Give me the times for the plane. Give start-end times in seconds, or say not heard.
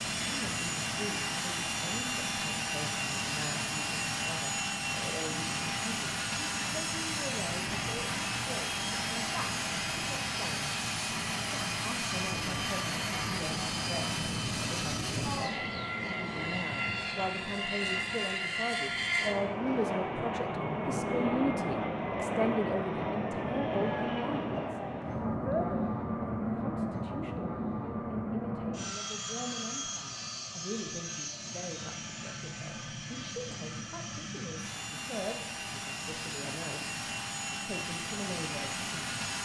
0.0-39.4.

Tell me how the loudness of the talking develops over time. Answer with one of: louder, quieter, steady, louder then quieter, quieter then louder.
louder then quieter.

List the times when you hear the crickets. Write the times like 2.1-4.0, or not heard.
not heard.